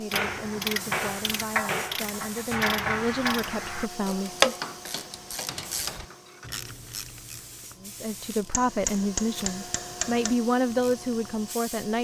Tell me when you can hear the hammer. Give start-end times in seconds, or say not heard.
0.1-2.0, 4.6-6.5, 8.5-10.3.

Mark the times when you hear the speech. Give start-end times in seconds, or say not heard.
0.0-4.5, 7.8-11.9.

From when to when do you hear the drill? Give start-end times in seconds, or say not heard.
not heard.